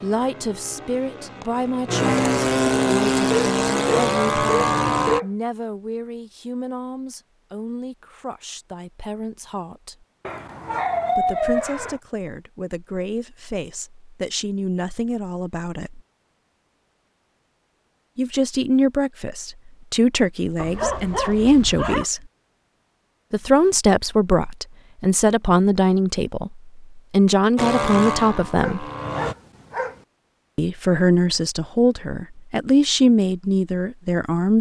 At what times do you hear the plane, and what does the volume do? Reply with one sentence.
The plane can be heard from 0.0 to 5.2 s, getting louder; and briefly from 27.6 to 29.4 s.